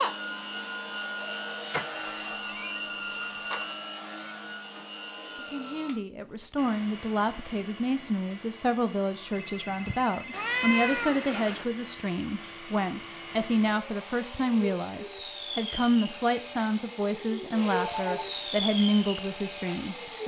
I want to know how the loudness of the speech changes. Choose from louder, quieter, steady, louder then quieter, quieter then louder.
steady.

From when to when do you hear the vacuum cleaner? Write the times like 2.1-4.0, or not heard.
0.0-20.2.